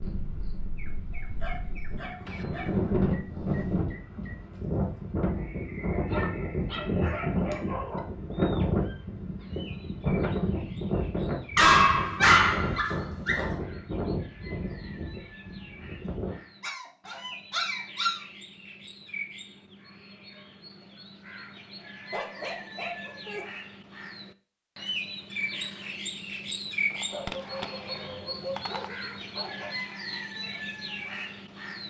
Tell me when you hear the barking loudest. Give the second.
12 s.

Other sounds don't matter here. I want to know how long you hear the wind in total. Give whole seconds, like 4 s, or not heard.
16 s.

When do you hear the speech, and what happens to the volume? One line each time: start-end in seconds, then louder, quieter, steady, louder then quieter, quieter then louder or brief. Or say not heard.
not heard.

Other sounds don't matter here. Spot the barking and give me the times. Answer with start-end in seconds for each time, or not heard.
1.1-2.9, 6.1-8.1, 11.6-13.6, 16.6-18.2, 22.1-23.4, 27.1-29.8.